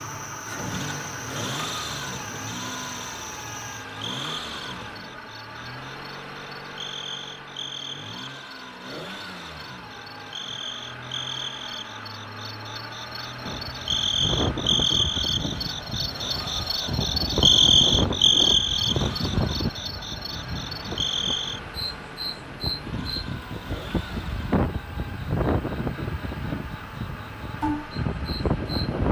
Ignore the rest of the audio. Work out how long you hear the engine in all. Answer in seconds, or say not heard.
29 s.